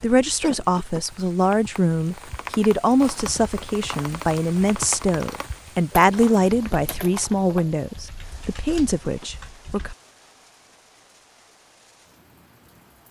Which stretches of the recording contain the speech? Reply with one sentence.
The speech can be heard from 0.0 to 9.9 s.